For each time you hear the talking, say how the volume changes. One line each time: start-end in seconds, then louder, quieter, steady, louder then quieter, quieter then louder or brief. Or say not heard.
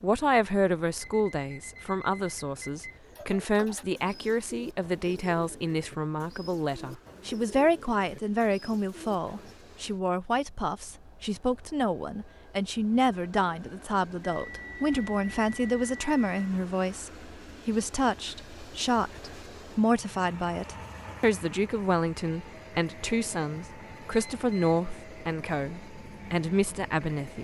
0.0-27.3 steady.